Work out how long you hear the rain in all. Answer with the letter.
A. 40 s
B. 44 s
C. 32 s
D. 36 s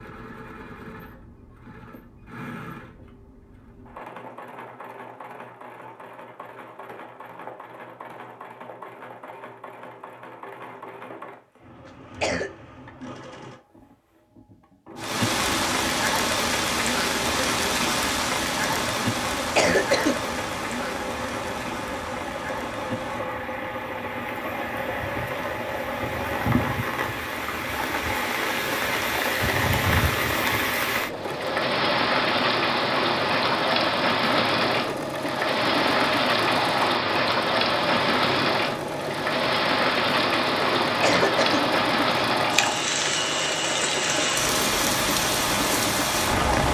C.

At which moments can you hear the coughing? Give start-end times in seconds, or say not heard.
11.8-12.5, 19.4-20.2, 41.0-42.2.